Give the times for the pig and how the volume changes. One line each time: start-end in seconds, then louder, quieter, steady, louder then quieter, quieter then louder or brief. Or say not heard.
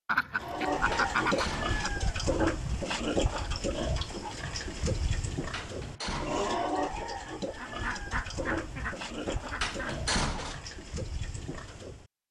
0.4-12.1 quieter.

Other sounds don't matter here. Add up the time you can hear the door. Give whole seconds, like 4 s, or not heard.
3 s.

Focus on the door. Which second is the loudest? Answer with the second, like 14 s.
10 s.